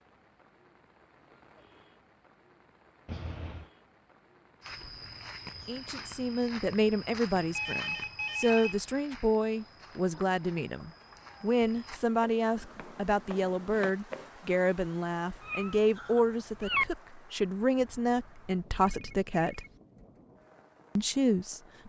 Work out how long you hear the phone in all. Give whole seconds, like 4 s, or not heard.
3 s.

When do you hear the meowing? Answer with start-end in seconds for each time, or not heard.
3.0-3.7, 9.9-11.5, 15.4-16.9.